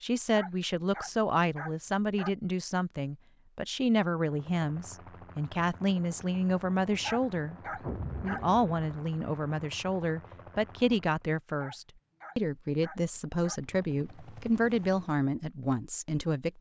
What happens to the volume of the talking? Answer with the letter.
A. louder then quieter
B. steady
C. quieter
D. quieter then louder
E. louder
B.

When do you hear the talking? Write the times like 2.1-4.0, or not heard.
0.0-16.5.